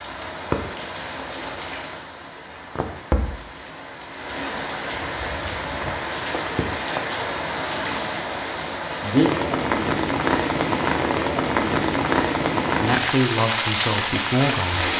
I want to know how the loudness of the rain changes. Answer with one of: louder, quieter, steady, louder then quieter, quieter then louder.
louder.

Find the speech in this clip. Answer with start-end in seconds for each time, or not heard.
12.8-14.9.